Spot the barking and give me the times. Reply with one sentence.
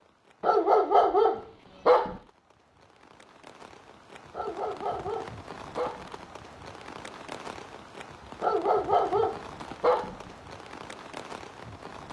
The barking can be heard from 0.4 to 2.2 s, from 4.3 to 6.1 s and from 8.4 to 10.2 s.